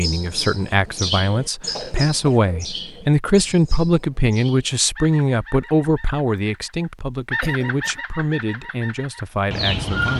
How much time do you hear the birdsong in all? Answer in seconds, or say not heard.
10 s.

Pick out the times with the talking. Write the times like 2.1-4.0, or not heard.
0.0-10.1.